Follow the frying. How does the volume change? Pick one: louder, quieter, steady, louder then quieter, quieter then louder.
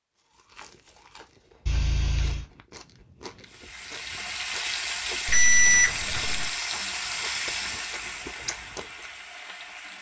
quieter.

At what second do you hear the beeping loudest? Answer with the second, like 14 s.
6 s.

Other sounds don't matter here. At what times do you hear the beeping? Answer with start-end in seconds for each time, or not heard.
1.6-2.5, 5.2-6.5.